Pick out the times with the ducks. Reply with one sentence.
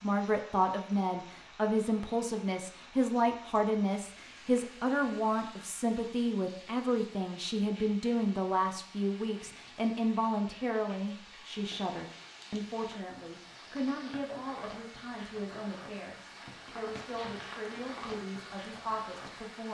The ducks can't be heard in this clip.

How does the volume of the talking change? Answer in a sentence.
The loudness of the talking goes down.